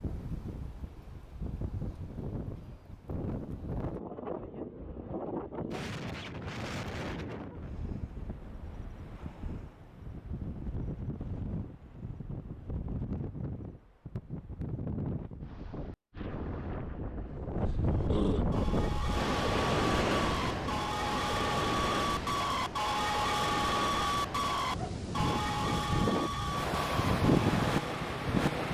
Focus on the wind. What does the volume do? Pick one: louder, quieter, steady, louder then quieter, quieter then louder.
louder.